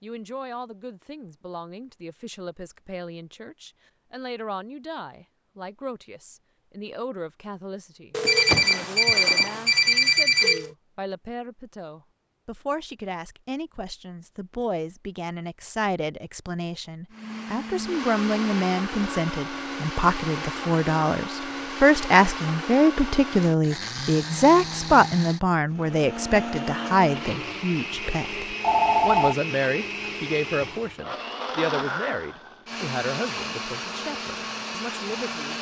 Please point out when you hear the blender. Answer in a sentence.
You can hear the blender from 17.1 to 35.5 s.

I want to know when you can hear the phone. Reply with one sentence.
The phone can be heard from 8.1 to 10.7 s and from 28.6 to 29.4 s.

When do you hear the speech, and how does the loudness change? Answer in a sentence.
You can hear the speech from 0.0 to 35.5 s, getting louder then quieter.